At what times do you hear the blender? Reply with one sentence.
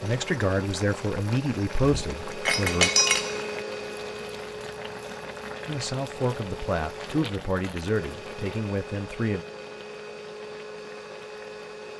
The blender can be heard from 0.0 to 11.9 s.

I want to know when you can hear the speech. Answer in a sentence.
You can hear the speech from 0.0 to 2.9 s and from 5.7 to 9.4 s.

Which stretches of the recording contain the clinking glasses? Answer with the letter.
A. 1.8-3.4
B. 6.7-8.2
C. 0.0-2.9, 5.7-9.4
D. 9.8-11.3
A.